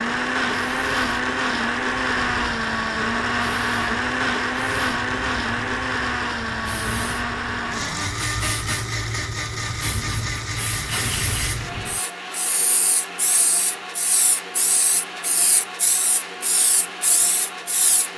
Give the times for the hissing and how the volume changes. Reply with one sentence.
The hissing can be heard from 0.0 to 18.1 s, getting louder.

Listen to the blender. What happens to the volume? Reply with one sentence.
The loudness of the blender goes down.